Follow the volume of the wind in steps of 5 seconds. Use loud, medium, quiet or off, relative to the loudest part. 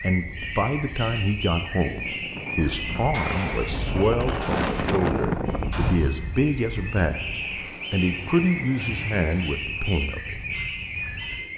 loud, loud, quiet.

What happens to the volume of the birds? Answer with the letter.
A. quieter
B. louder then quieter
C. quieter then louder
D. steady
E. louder
C.